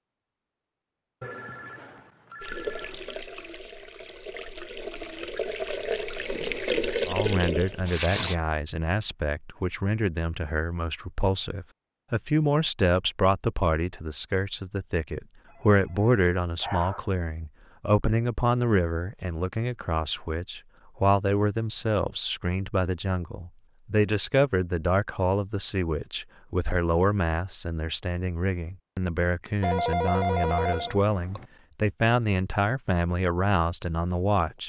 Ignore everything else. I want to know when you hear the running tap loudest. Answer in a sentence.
The volume of the running tap peaks at 7 seconds.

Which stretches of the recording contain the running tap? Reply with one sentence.
The running tap can be heard from 2.4 to 8.3 s.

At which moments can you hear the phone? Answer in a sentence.
You can hear the phone from 1.2 to 3.2 s, from 15.5 to 17.1 s and from 29.6 to 31.4 s.